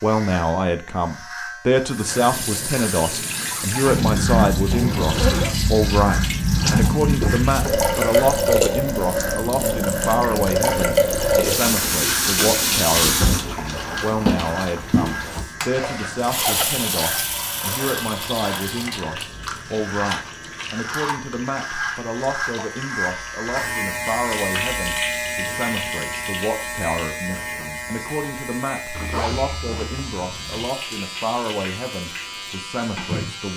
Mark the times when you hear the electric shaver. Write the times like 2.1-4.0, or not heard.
0.0-33.5.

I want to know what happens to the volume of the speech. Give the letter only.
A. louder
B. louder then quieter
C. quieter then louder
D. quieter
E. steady
D.